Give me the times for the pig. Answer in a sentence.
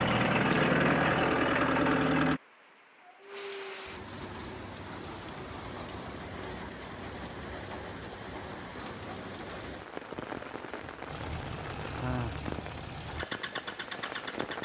The pig can't be heard in this clip.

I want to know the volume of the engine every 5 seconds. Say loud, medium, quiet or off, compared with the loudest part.
loud, off, quiet.